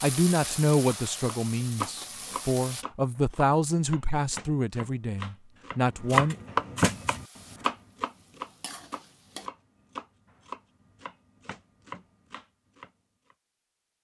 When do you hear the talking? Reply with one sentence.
You can hear the talking from 0.0 to 6.3 s.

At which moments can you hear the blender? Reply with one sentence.
You can't hear the blender here.